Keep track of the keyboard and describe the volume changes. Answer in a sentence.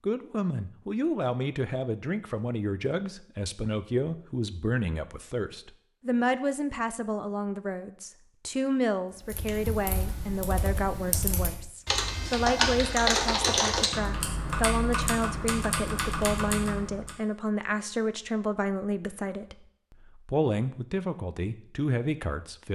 The volume of the keyboard goes up, then down.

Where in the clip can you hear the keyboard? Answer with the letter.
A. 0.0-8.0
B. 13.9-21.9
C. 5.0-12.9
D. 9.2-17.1
D.